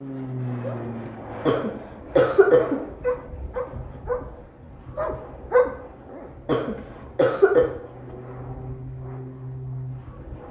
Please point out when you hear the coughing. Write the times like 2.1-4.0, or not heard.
1.4-2.8, 6.5-7.7.